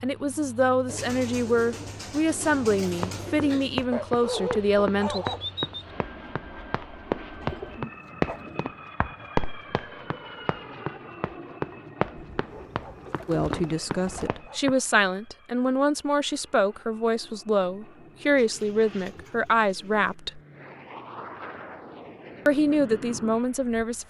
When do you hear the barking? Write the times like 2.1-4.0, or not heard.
3.9-5.9, 12.2-14.8.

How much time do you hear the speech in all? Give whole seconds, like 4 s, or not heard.
14 s.